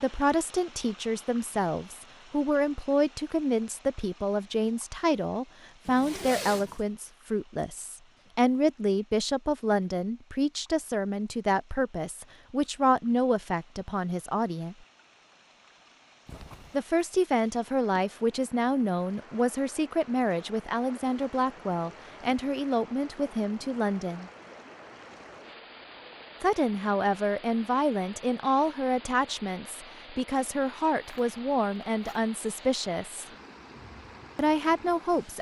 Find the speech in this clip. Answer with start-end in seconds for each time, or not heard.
0.0-14.8, 16.7-24.3, 26.4-33.2, 34.4-35.3.